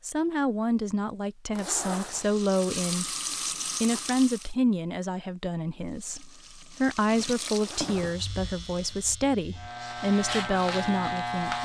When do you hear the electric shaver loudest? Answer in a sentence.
The loudest moment of the electric shaver is at 11 seconds.